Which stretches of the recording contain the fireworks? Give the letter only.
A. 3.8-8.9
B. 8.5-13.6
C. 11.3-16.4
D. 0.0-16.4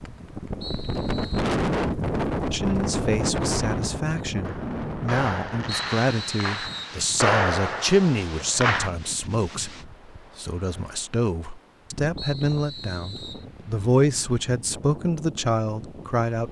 A.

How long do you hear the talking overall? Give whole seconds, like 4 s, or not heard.
14 s.